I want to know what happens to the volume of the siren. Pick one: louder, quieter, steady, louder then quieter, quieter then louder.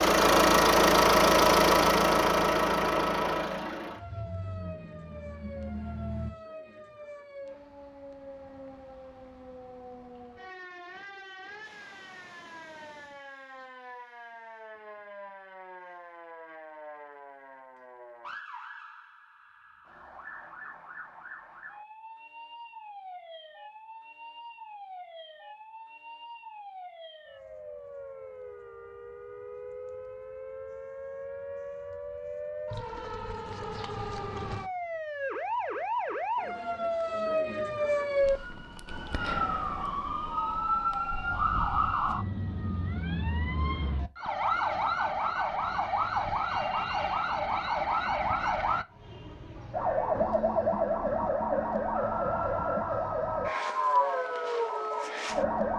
louder.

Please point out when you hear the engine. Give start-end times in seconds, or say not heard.
0.0-6.3.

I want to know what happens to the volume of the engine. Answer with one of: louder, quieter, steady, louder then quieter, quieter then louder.
quieter.